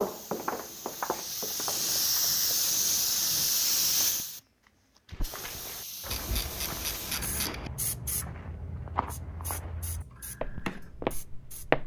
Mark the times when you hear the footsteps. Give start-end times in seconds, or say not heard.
0.0-2.8, 5.1-11.8.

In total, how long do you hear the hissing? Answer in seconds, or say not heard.
12 s.